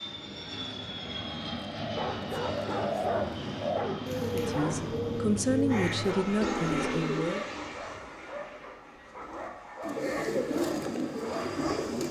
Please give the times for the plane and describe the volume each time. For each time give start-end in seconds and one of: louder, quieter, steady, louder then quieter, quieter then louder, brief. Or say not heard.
0.0-12.0 quieter.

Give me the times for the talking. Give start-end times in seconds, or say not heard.
4.2-7.5.